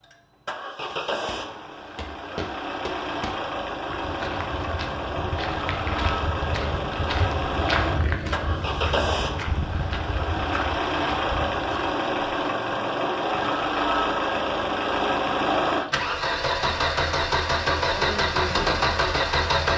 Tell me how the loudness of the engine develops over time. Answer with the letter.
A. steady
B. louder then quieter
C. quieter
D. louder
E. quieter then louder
D.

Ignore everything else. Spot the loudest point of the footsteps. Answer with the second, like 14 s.
8 s.